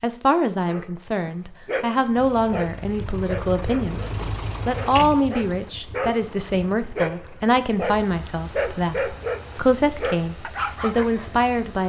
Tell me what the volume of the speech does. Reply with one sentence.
The loudness of the speech stays about the same.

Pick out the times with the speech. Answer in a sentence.
The speech can be heard from 0.0 to 4.0 s and from 4.7 to 11.8 s.